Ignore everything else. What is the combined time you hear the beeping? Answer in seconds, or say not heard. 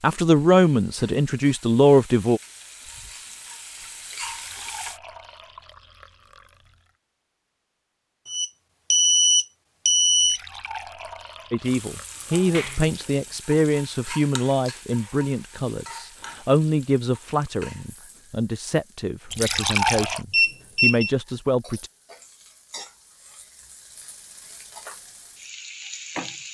3 s.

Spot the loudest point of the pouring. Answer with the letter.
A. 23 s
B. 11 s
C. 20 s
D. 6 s
C.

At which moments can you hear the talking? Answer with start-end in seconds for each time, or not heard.
0.0-2.4, 11.5-21.9.